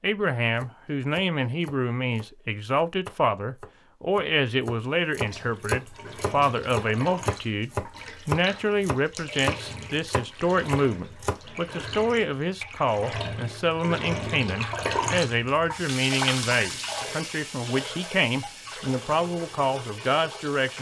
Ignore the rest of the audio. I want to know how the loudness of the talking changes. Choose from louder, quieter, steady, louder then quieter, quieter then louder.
steady.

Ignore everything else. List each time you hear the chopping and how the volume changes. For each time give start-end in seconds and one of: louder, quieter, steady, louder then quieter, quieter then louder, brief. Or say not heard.
0.6-11.4 louder.